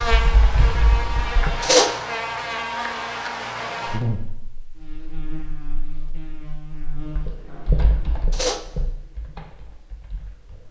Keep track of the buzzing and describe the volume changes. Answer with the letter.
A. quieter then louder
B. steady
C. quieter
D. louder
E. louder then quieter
C.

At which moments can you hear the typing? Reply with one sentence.
The typing can be heard from 0.0 to 1.8 s and from 6.9 to 10.6 s.